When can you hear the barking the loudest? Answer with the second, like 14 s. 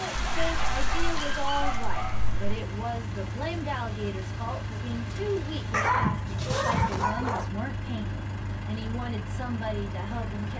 6 s.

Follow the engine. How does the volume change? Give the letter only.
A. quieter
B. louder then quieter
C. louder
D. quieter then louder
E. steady
E.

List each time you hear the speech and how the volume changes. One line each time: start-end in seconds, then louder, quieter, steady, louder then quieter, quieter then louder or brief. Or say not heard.
0.0-10.5 steady.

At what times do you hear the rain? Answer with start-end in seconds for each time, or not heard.
0.0-5.8.